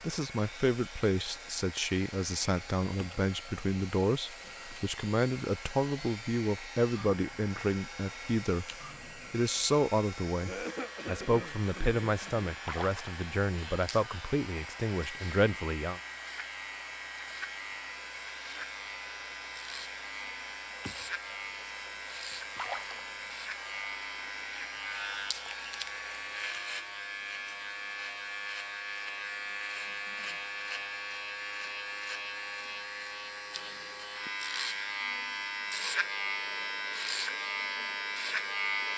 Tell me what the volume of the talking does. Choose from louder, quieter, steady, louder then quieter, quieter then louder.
steady.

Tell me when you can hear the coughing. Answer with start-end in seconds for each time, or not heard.
10.4-12.5.